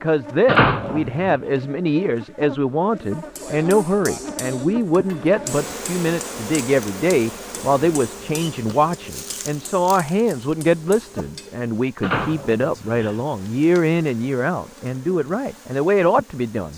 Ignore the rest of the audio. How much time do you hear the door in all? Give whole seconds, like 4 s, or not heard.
2 s.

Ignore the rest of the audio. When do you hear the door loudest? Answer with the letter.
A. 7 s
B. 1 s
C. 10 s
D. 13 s
B.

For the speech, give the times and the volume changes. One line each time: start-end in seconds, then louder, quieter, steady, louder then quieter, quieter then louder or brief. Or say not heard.
0.0-16.7 steady.